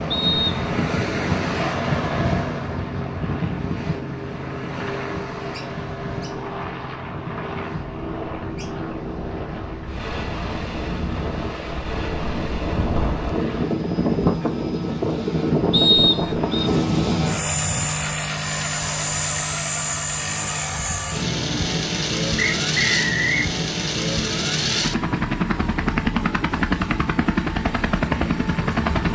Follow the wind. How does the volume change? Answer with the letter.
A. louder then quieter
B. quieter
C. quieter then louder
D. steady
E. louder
C.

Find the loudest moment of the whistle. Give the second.
16 s.